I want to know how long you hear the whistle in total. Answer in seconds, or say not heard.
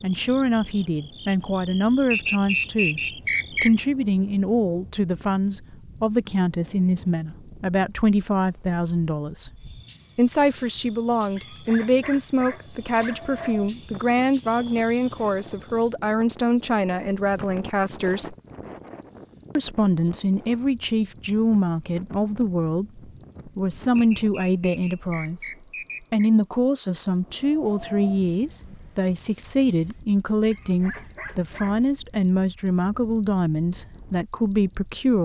4 s.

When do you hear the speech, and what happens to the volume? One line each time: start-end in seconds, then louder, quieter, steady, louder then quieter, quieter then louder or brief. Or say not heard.
0.0-9.5 steady
10.2-18.4 steady
19.6-25.5 steady
26.1-35.2 steady.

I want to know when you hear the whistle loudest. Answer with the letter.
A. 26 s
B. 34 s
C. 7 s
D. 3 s
D.